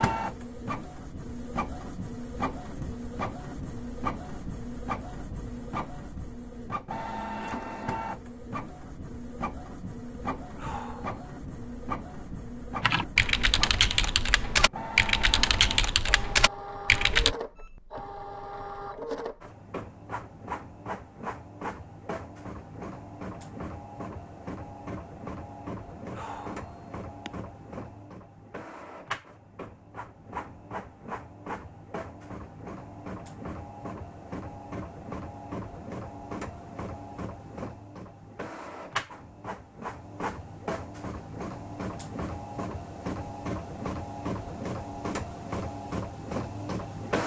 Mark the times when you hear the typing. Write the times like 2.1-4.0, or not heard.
12.8-17.4.